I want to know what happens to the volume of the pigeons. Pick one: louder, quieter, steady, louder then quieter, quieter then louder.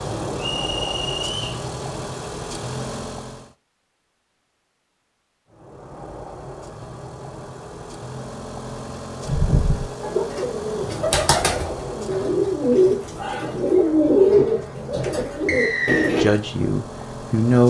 louder then quieter.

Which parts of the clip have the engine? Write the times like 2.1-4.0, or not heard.
0.0-3.5, 5.5-17.6.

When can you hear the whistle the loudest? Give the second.
16 s.